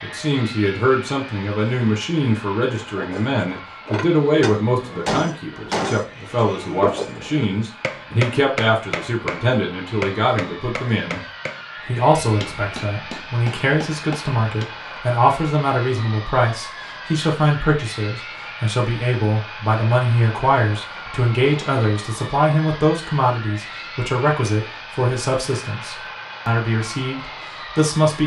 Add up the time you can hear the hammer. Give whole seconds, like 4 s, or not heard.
12 s.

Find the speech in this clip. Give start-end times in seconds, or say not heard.
0.0-11.2, 11.8-28.2.